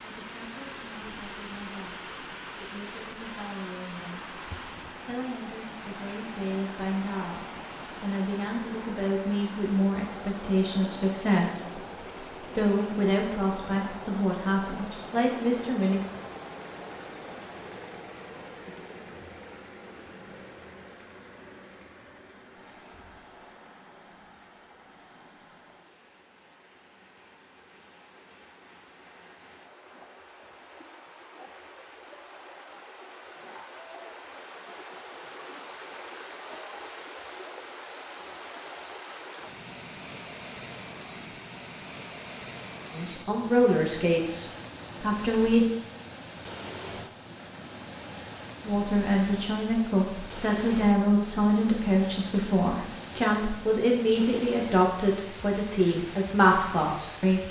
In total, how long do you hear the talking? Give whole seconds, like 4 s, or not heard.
27 s.